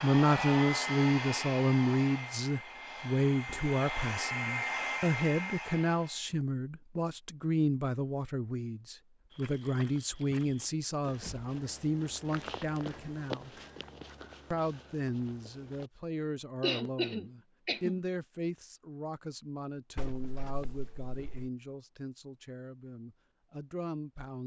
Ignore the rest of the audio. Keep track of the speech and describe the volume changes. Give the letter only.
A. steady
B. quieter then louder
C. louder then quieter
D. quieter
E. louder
D.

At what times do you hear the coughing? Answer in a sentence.
The coughing can be heard from 16.6 to 18.0 s.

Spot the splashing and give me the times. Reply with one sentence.
The splashing can't be heard in this clip.